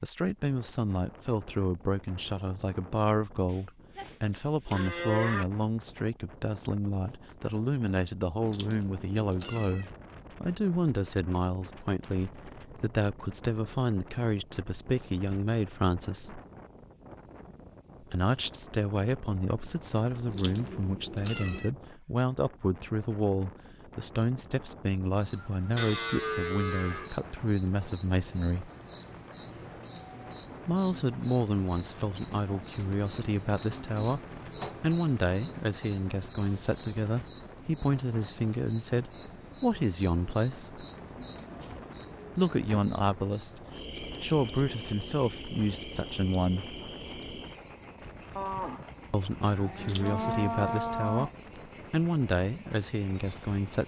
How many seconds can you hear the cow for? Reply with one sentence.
You can hear the cow for 6 seconds altogether.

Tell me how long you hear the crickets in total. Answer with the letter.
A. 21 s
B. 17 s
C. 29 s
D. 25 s
C.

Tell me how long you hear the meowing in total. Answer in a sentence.
The meowing can be heard for 4 seconds in total.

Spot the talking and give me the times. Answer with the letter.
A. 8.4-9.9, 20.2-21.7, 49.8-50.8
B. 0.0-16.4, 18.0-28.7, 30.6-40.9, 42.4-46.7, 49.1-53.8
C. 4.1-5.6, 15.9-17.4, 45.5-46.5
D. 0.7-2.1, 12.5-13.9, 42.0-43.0
B.